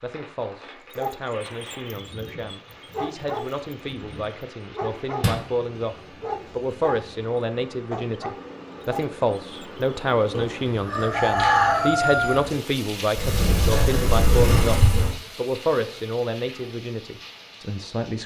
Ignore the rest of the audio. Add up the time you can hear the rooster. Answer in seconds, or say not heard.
2 s.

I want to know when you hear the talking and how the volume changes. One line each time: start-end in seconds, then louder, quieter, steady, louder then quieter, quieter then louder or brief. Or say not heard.
0.0-18.2 louder.